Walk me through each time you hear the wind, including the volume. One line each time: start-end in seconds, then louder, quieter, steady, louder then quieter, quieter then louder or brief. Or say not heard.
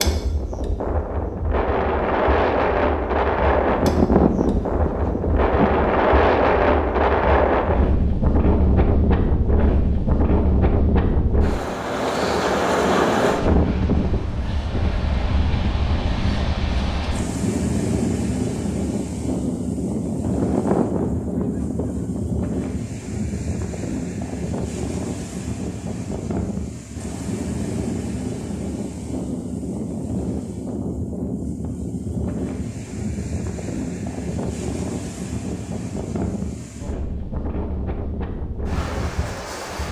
0.0-39.8 quieter.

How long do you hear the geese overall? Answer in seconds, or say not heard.
4 s.